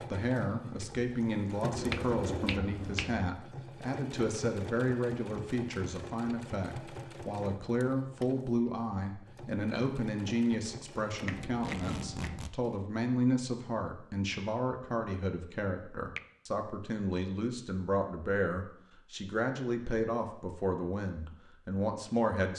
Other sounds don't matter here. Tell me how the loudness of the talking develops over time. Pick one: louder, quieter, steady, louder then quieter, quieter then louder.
steady.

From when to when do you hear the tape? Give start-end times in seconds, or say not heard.
11.4-12.6.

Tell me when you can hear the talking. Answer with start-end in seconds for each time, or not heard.
0.1-22.5.